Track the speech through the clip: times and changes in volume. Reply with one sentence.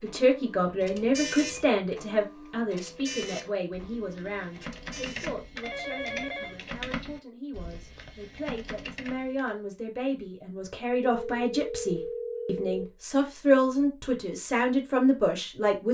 You can hear the speech from 0.0 to 15.9 s, getting quieter then louder.